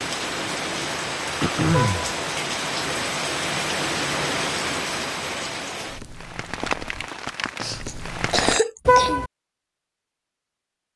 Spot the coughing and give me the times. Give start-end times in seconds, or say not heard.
1.4-2.1, 7.6-9.2.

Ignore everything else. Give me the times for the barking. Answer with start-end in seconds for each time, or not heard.
not heard.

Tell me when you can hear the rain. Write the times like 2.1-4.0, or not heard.
0.0-8.6.